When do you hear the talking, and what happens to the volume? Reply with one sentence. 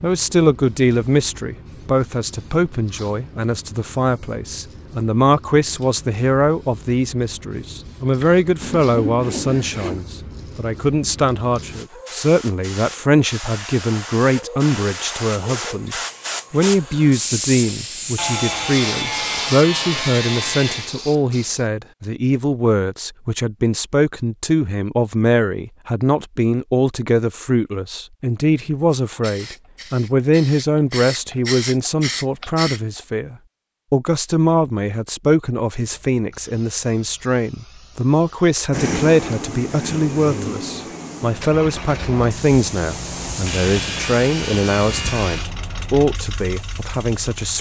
You can hear the talking from 0.0 to 47.5 s, at a steady volume.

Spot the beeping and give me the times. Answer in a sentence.
You can't hear the beeping here.